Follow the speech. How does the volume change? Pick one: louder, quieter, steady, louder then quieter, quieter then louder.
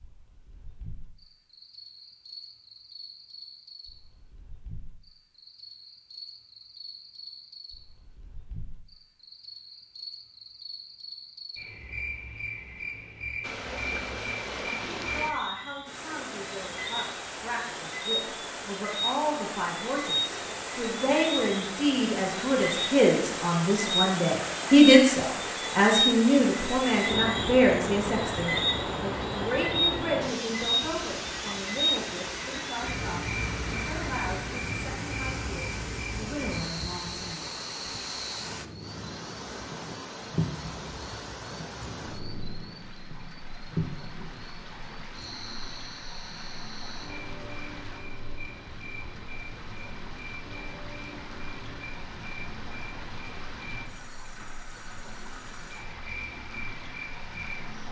louder then quieter.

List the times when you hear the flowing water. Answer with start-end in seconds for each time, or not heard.
13.4-57.8.